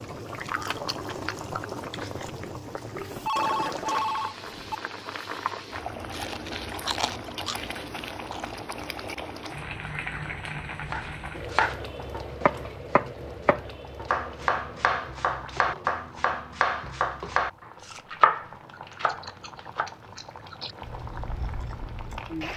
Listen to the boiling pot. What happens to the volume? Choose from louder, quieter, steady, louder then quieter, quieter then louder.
quieter.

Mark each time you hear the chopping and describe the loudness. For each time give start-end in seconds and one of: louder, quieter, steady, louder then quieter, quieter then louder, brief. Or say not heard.
10.9-17.5 steady
18.1-19.9 brief.